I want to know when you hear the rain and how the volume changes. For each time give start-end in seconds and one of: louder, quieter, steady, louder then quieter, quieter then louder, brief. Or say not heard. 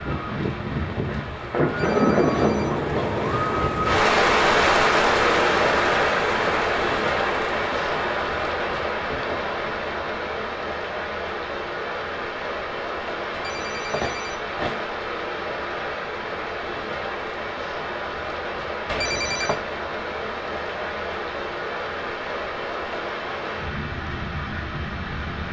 0.0-25.4 quieter.